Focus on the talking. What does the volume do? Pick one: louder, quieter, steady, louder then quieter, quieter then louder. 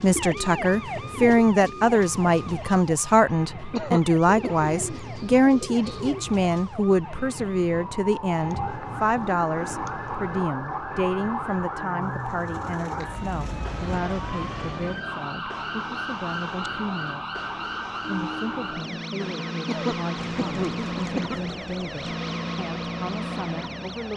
quieter.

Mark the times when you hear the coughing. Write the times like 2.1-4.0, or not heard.
3.7-4.5, 19.6-21.4.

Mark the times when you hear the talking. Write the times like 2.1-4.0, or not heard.
0.0-17.3, 18.1-24.1.